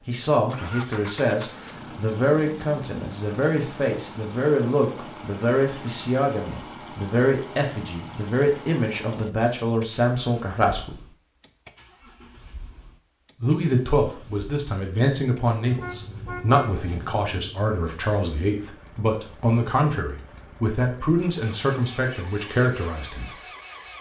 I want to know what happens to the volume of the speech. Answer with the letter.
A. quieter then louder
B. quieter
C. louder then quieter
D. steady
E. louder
D.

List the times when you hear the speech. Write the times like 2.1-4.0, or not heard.
0.1-11.0, 13.4-23.4.